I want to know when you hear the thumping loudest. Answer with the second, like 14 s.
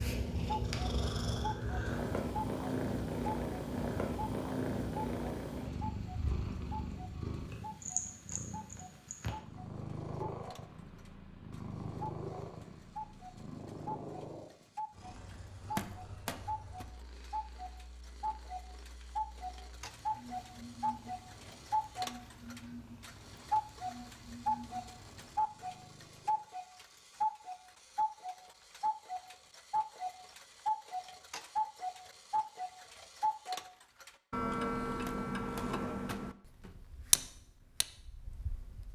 16 s.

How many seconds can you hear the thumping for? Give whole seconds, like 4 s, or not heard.
3 s.